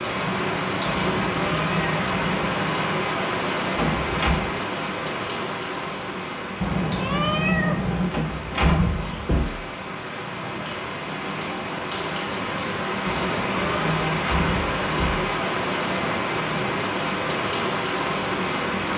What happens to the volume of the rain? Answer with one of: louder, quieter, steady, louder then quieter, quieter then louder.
quieter then louder.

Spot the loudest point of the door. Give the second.
9 s.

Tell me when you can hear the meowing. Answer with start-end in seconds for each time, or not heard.
0.8-2.9, 6.6-8.2, 13.1-13.9.